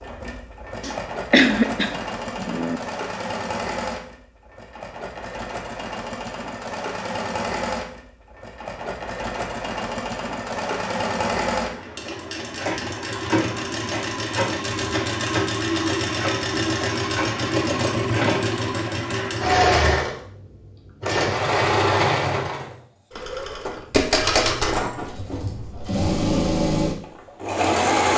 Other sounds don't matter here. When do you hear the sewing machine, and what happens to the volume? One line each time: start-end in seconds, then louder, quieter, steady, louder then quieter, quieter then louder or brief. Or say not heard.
0.0-28.1 louder.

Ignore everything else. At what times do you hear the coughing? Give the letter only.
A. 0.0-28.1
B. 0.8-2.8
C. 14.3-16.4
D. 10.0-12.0
B.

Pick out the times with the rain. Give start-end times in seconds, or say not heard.
not heard.